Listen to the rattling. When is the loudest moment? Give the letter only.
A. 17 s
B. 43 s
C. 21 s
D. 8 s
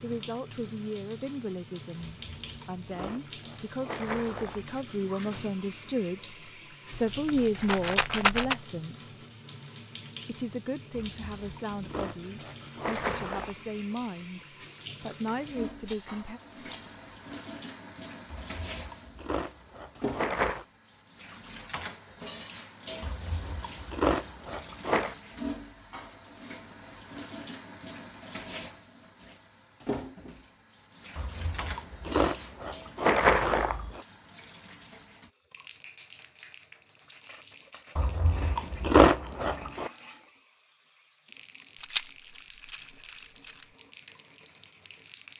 D.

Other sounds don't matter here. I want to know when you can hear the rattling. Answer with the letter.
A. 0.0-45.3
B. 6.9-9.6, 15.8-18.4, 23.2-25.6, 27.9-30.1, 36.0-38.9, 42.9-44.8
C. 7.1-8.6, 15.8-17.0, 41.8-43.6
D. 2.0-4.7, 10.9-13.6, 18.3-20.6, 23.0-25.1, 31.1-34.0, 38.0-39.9
C.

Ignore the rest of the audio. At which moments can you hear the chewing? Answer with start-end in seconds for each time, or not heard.
2.0-4.7, 10.9-13.6, 18.3-20.6, 23.0-25.1, 31.1-34.0, 38.0-39.9.